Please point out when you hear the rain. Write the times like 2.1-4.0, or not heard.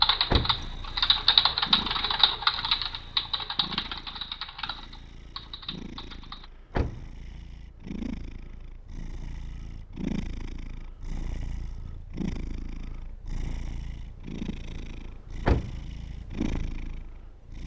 not heard.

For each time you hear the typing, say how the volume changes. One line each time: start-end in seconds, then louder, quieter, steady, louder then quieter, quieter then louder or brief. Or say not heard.
0.0-6.5 quieter.